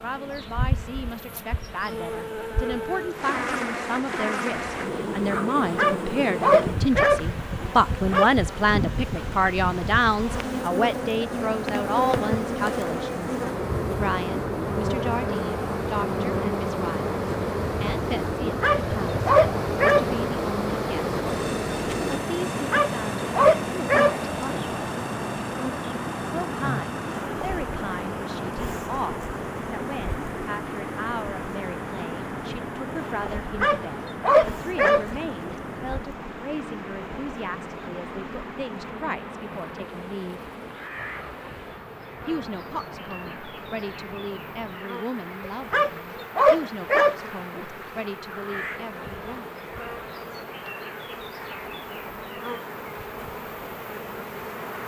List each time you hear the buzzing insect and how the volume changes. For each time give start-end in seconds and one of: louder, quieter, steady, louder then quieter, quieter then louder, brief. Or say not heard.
0.0-54.8 quieter.